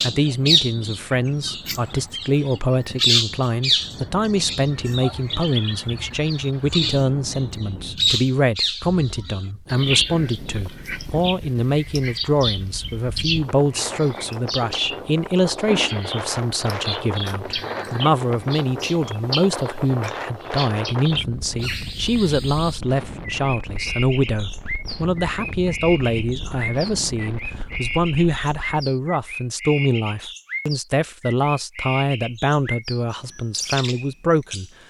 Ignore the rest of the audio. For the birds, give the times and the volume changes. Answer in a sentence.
The birds can be heard from 0.0 to 34.7 s, getting quieter.